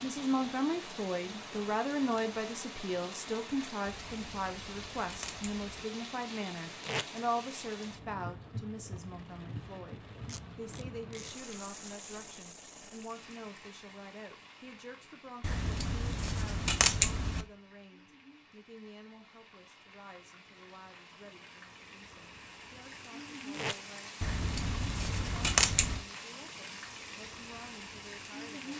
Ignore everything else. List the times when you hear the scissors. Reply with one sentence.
You can hear the scissors from 3.9 to 5.8 s, from 15.4 to 17.4 s and from 24.2 to 26.1 s.